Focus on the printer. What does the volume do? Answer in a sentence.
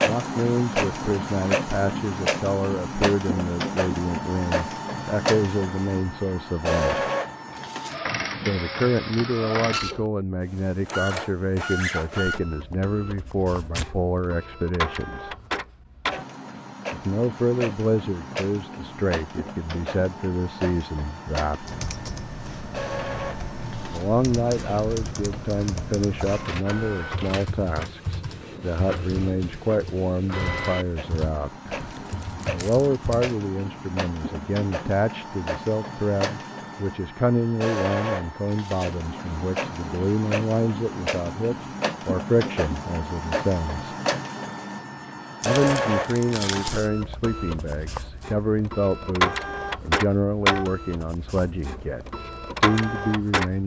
The volume of the printer goes down, then up.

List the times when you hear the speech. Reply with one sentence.
The speech can be heard from 0.0 to 7.0 s, from 8.4 to 15.3 s, from 16.9 to 21.6 s, from 23.9 to 31.6 s, from 32.5 to 43.9 s and from 45.5 to 53.6 s.